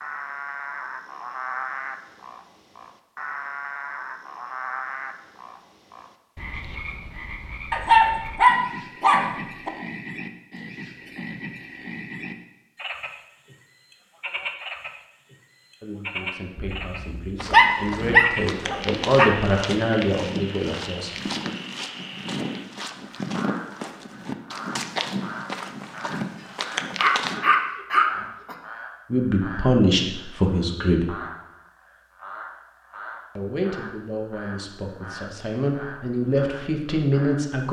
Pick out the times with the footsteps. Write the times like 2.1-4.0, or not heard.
17.4-27.4.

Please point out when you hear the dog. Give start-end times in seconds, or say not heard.
7.7-9.7, 16.8-19.3, 26.9-28.6.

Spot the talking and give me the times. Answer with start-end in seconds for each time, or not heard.
15.8-21.2, 29.1-31.1, 33.4-37.6.